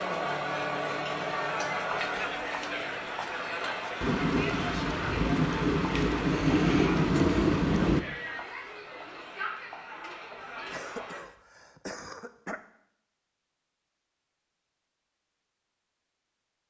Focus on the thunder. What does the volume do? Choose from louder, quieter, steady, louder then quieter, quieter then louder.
louder.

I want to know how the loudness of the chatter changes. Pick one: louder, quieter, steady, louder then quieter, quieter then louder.
quieter.